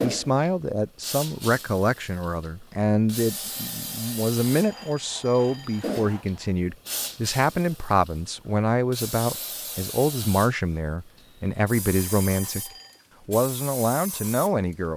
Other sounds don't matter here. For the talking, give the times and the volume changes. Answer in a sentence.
You can hear the talking from 0.0 to 14.9 s, at a steady volume.